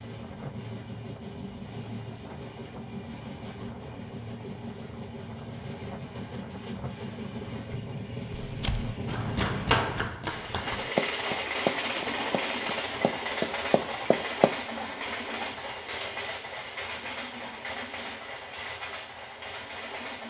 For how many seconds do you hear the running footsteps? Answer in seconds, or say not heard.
6 s.